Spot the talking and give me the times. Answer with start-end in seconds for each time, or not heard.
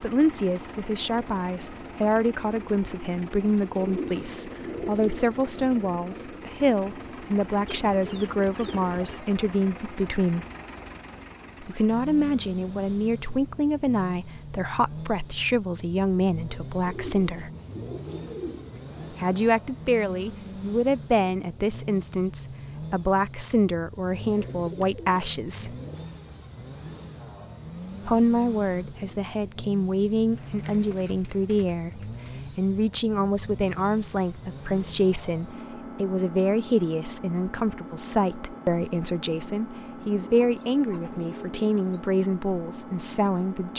0.0-10.4, 11.6-17.5, 19.1-25.8, 28.1-43.7.